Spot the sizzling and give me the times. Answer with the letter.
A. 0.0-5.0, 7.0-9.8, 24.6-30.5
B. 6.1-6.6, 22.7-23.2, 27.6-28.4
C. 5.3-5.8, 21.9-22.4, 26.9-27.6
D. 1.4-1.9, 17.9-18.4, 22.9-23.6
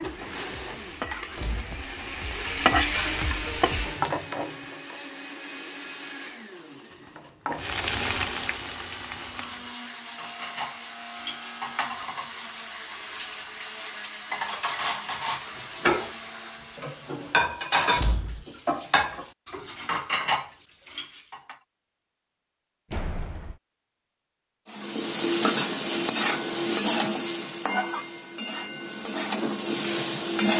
A.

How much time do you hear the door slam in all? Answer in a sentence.
You can hear the door slam for 2 seconds altogether.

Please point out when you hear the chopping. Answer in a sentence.
The chopping can't be heard in this clip.